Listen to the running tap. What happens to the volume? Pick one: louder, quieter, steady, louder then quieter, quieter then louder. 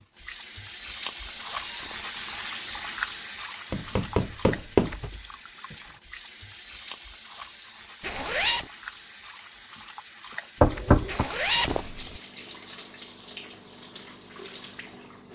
quieter.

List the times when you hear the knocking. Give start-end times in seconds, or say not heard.
3.7-5.0, 10.6-11.2.